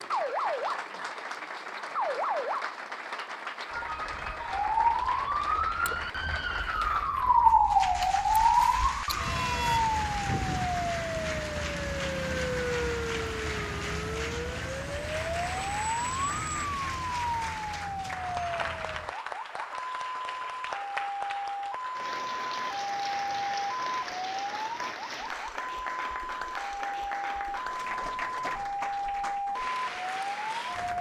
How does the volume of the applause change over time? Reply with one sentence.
The volume of the applause stays about the same.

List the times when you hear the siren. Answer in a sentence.
You can hear the siren from 0.0 to 30.9 s.